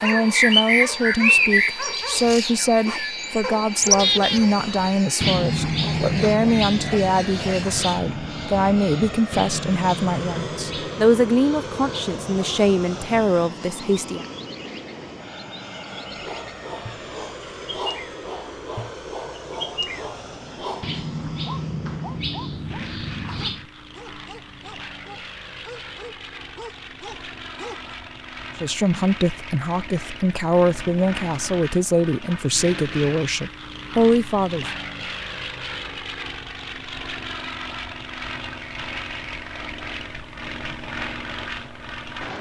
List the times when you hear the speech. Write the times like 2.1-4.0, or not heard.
0.0-14.2, 28.6-34.7.